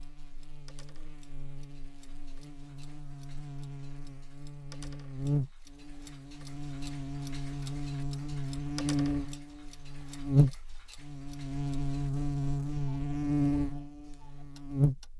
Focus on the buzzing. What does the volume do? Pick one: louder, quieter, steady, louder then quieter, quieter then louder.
louder.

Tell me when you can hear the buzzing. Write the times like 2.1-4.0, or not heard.
0.0-15.1.